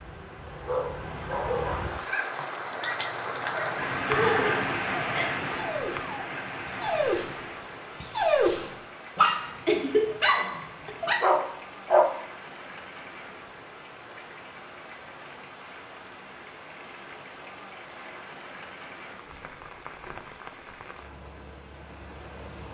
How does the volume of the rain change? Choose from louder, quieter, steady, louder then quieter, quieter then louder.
quieter.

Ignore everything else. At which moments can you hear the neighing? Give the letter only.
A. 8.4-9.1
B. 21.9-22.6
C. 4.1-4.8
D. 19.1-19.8
C.